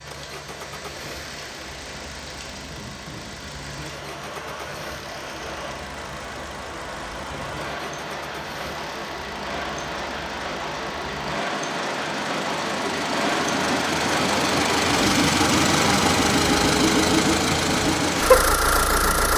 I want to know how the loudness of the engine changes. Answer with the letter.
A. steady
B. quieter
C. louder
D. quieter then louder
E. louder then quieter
C.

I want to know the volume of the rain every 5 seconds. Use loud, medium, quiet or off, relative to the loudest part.
medium, medium, loud, loud.